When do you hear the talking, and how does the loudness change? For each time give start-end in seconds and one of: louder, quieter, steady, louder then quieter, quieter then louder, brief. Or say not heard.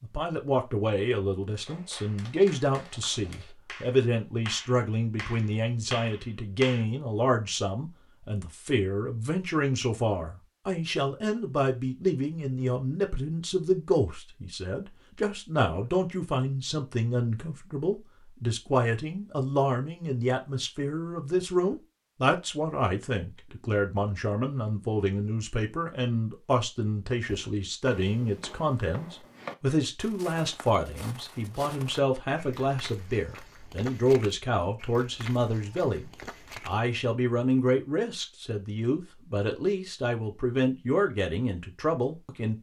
0.0-42.5 steady.